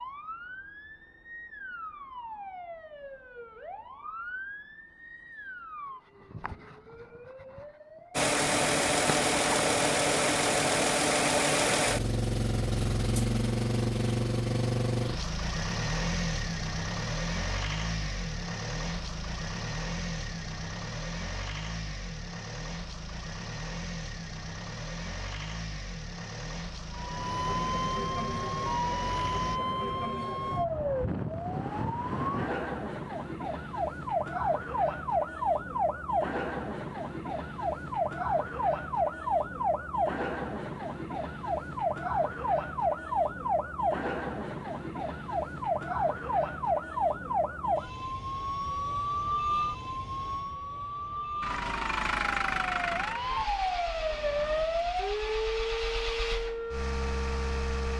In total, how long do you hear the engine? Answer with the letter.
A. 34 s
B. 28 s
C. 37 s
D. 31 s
B.